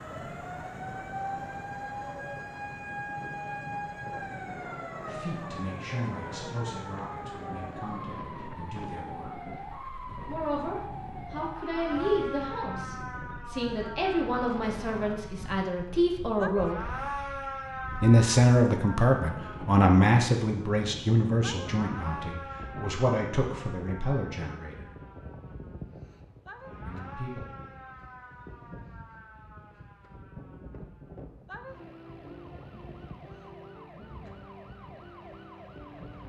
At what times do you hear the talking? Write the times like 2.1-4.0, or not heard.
5.0-9.4, 10.2-16.8, 18.0-24.9, 26.9-27.4.